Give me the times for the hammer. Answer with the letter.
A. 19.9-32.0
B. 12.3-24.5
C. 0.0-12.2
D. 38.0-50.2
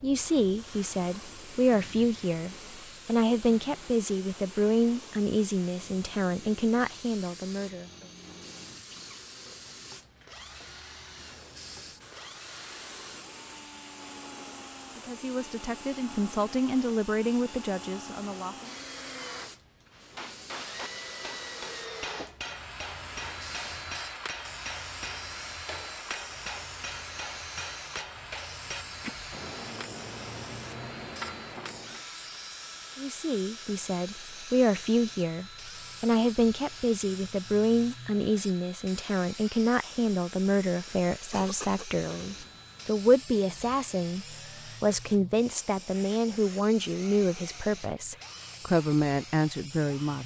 A.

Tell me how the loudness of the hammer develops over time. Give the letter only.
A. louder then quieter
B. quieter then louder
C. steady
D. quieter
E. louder
C.